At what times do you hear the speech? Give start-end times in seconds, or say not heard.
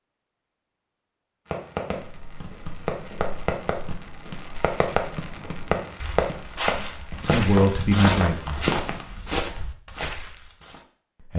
7.2-8.7.